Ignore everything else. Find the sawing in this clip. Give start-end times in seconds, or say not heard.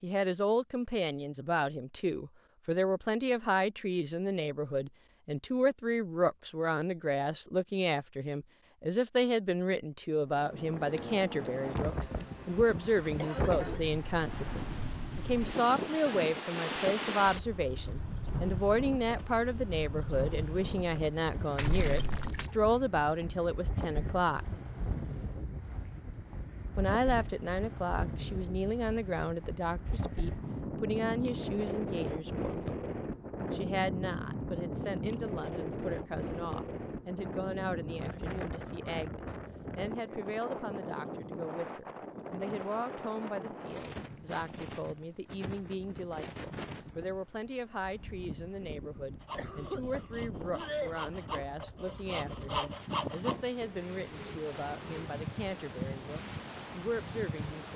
49.2-55.2.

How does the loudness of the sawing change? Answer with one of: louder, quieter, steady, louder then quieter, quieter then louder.
louder then quieter.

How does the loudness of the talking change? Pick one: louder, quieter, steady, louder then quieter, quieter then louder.
quieter.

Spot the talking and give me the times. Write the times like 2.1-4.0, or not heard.
0.0-24.4, 26.8-32.8, 33.5-57.7.